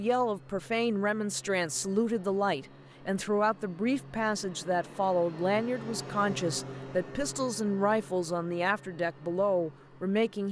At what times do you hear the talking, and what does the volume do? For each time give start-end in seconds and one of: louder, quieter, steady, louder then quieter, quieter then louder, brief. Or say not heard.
0.0-10.4 steady.